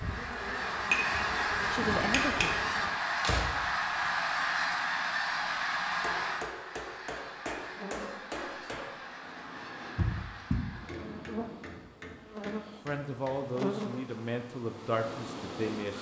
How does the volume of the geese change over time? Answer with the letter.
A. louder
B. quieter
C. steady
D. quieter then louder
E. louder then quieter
B.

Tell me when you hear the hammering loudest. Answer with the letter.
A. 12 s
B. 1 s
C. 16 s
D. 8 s
B.